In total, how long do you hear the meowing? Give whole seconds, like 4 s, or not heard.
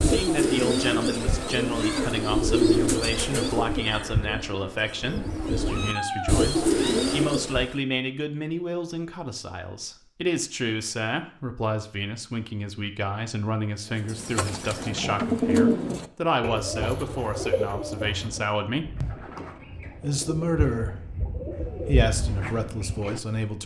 3 s.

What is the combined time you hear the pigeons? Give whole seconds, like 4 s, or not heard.
17 s.